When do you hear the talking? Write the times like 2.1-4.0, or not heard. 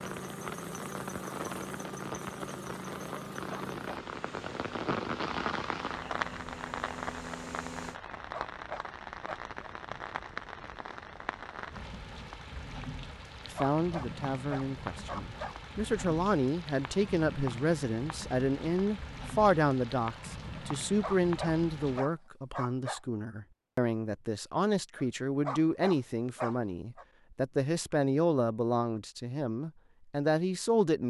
13.4-31.0.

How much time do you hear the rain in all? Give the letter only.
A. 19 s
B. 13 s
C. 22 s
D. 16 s
C.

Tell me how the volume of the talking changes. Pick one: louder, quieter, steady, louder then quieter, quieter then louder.
steady.